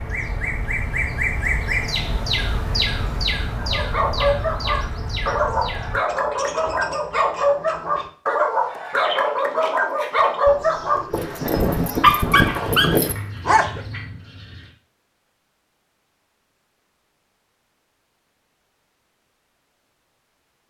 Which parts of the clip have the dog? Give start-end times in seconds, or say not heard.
3.5-13.8.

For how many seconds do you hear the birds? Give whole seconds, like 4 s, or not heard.
15 s.